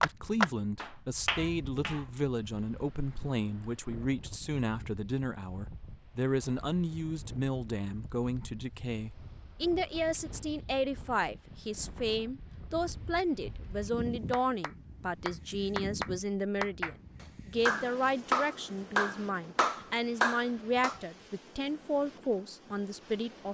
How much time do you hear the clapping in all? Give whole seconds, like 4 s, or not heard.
9 s.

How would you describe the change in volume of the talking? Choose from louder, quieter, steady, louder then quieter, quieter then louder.
steady.